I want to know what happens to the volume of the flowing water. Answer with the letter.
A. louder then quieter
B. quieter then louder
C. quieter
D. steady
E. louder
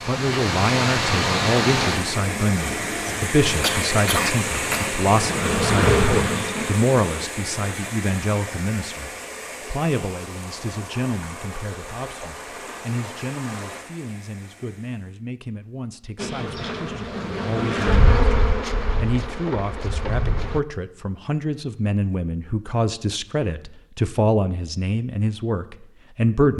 C.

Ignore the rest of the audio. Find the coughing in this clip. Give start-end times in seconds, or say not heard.
3.6-4.9.